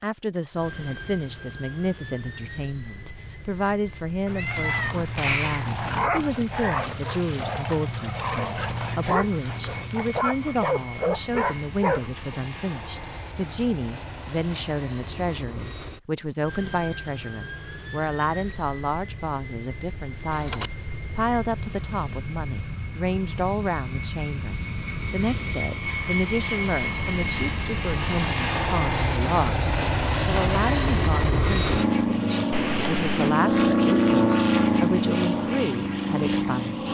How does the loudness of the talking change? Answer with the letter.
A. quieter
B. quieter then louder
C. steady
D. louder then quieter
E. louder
C.